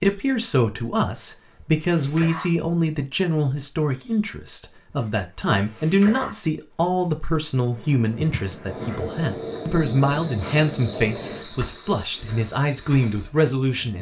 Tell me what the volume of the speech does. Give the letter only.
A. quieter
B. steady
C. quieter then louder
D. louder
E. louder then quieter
B.